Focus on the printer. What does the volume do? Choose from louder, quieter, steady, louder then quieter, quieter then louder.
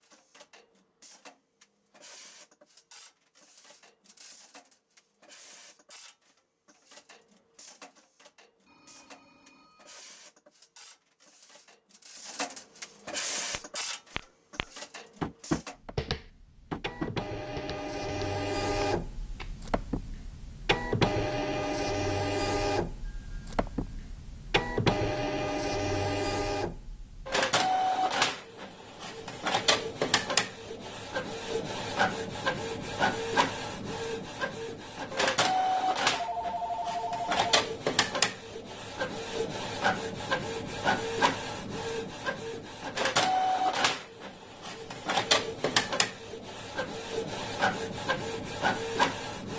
louder.